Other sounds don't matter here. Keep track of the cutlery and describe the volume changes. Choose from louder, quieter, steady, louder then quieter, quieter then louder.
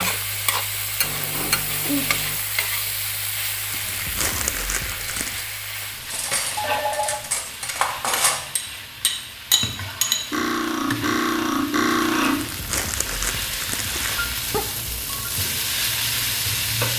louder.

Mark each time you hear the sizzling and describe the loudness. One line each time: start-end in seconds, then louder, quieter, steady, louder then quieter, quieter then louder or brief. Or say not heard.
0.0-16.9 quieter then louder.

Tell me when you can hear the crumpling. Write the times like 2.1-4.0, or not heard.
3.7-5.4, 12.2-14.2.